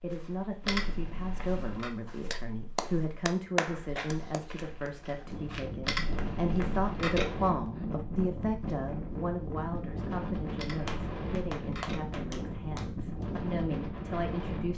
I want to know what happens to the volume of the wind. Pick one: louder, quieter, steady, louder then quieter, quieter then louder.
steady.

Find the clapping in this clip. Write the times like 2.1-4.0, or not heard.
2.3-4.9, 10.8-13.2.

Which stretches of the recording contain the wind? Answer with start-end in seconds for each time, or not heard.
5.2-14.7.